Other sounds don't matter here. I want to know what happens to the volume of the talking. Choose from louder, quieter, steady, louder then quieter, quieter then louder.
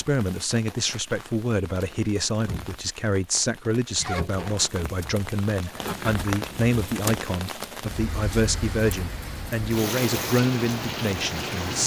steady.